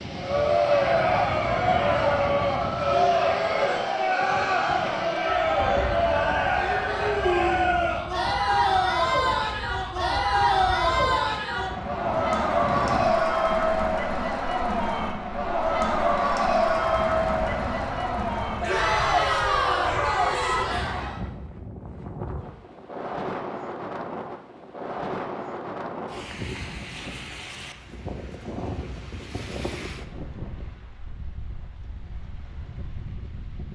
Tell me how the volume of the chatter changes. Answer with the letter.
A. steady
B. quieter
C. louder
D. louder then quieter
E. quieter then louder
A.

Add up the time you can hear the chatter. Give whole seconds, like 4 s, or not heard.
21 s.